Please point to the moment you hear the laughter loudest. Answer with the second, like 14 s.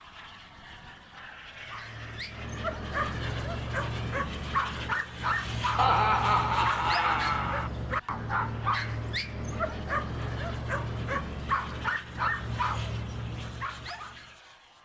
6 s.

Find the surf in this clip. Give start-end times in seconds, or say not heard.
not heard.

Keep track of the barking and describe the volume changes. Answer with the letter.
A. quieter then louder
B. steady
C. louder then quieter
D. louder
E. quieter
B.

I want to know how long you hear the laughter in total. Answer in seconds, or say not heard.
2 s.